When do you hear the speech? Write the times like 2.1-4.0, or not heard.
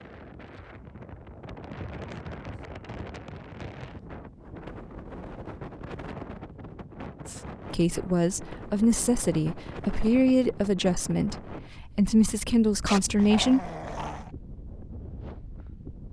7.2-13.7.